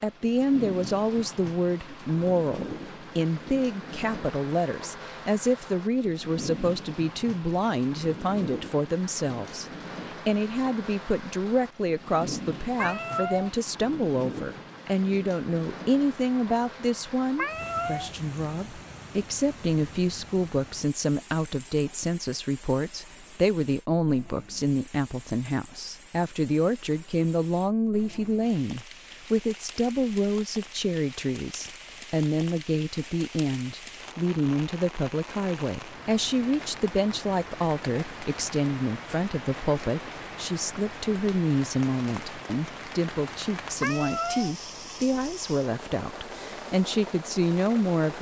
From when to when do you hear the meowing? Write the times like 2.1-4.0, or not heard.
12.8-13.5, 17.4-18.1, 43.8-44.5.